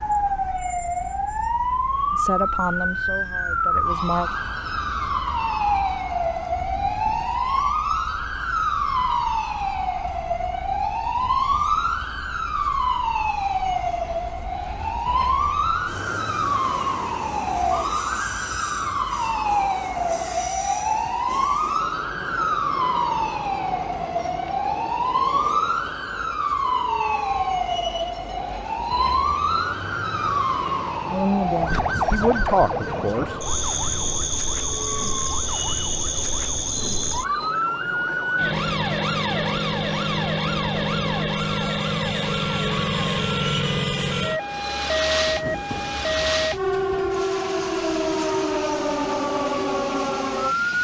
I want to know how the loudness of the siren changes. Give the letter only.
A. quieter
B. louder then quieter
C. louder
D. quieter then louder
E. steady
E.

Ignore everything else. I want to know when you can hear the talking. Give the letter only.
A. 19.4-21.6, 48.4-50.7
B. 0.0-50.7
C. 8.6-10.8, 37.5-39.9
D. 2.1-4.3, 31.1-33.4
D.